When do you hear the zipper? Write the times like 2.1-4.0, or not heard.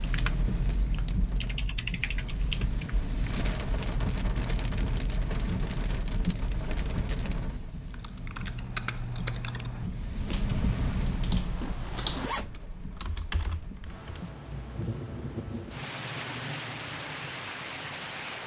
11.6-12.7.